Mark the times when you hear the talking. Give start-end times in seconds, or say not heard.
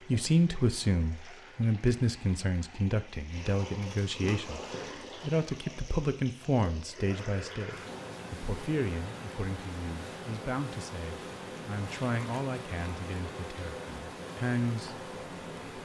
0.1-4.6, 5.2-15.0.